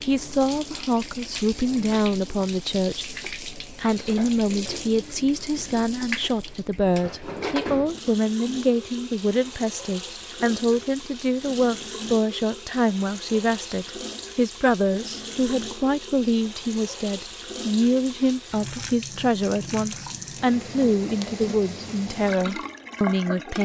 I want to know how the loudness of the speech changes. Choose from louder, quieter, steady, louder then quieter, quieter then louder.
steady.